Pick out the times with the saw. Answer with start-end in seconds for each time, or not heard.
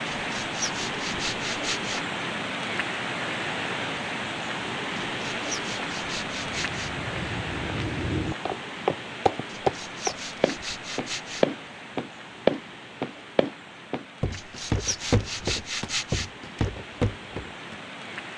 0.1-2.0, 5.1-6.9, 9.4-11.4, 14.3-16.3.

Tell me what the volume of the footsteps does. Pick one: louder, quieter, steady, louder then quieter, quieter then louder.
louder then quieter.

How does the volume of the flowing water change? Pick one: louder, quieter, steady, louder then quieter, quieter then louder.
quieter.